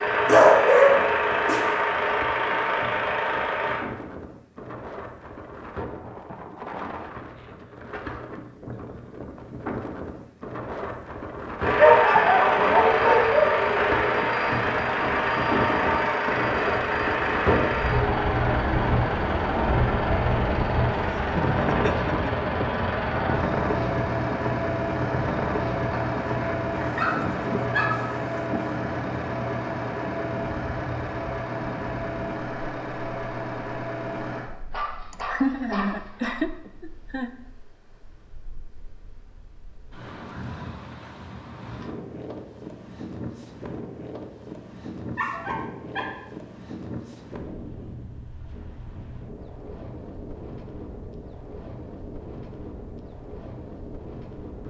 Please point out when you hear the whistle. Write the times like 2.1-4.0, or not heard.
not heard.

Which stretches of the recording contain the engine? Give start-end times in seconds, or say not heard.
0.0-3.9, 11.6-34.5.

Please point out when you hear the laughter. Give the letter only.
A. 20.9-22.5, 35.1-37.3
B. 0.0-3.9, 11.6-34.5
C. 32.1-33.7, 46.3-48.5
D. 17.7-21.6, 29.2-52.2
A.